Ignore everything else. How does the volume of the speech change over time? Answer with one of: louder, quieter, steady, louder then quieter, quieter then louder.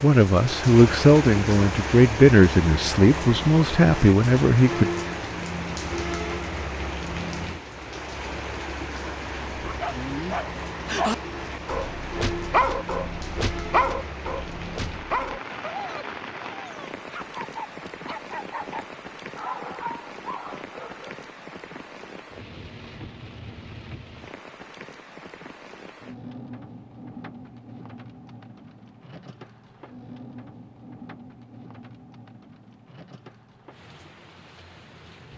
steady.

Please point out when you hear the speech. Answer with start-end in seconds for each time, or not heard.
0.0-4.9.